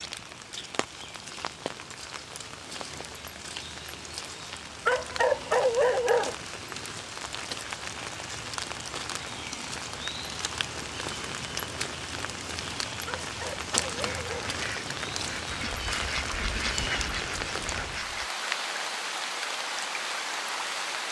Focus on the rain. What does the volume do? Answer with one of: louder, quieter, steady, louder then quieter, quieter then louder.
louder.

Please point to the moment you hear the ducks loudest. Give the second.
17 s.